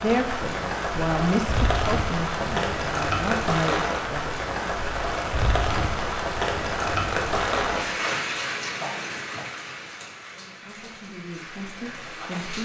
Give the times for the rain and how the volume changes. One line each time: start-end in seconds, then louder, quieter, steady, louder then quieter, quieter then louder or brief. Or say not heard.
0.0-12.6 quieter.